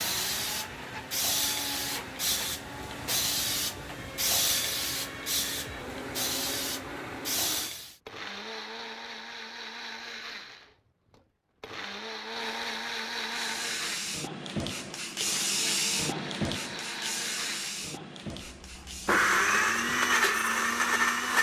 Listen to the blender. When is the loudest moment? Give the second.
20 s.